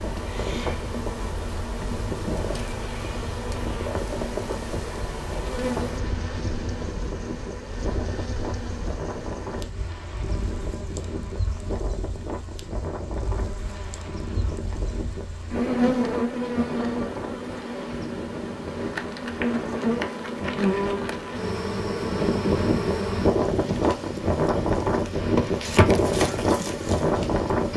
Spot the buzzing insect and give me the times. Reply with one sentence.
The buzzing insect can be heard from 0.0 to 27.7 s.